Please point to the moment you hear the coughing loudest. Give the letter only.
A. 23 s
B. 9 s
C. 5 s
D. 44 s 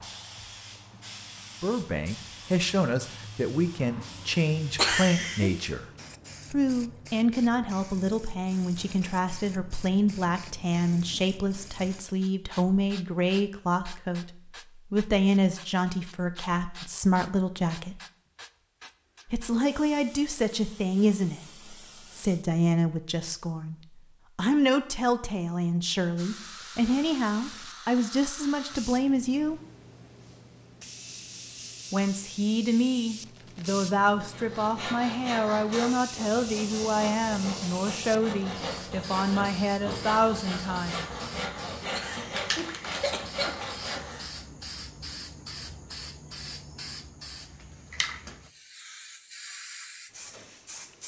C.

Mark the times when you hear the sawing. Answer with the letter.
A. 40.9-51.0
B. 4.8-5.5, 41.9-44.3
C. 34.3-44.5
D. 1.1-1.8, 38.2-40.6
C.